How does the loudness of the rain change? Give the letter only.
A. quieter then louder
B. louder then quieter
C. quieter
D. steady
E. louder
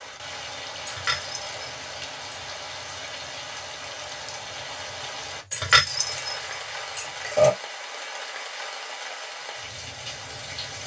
D.